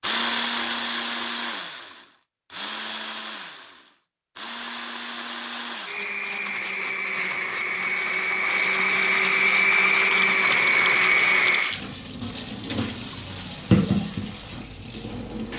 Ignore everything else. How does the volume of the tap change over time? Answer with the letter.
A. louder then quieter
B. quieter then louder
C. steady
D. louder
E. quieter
A.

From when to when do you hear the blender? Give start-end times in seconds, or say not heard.
0.0-11.8.